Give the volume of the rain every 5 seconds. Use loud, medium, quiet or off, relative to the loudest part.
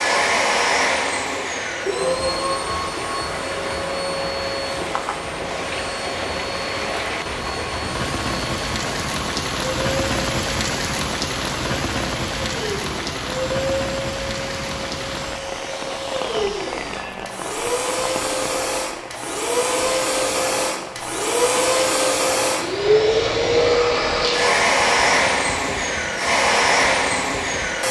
medium, loud, loud, medium, medium, quiet.